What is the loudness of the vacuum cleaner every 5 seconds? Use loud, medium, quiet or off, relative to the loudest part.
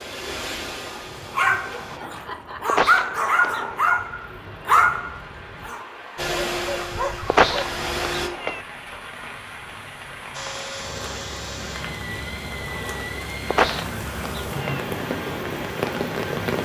medium, loud, medium, medium.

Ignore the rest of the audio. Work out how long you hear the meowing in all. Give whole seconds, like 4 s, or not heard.
4 s.